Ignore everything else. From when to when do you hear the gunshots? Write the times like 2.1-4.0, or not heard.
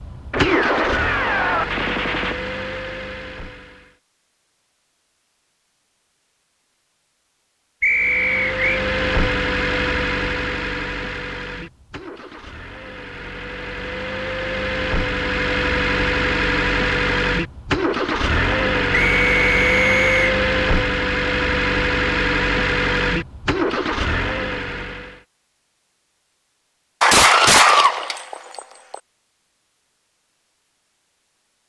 0.3-2.4, 27.0-28.9.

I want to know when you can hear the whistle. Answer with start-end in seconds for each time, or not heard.
7.8-8.8, 18.9-20.4.